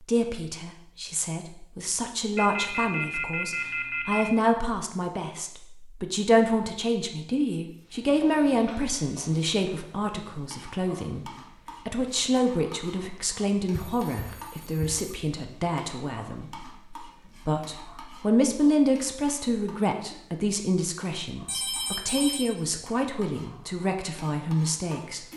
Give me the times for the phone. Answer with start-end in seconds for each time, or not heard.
2.4-4.2, 13.7-14.9, 21.4-22.6.